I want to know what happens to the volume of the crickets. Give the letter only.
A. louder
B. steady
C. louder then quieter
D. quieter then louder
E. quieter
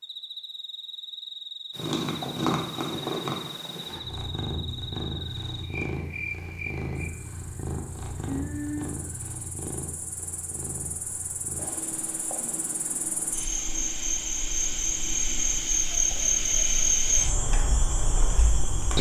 A.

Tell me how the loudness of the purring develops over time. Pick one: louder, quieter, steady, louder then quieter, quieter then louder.
quieter.